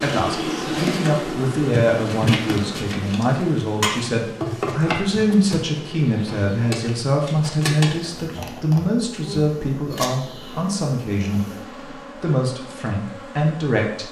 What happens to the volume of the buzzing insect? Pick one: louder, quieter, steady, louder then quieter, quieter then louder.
quieter.